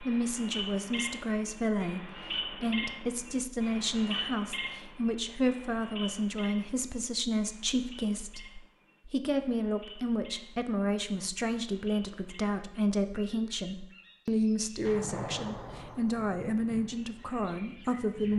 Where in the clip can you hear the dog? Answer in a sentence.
You can't hear the dog here.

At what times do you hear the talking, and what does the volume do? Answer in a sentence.
The talking can be heard from 0.0 to 18.3 s, at a steady volume.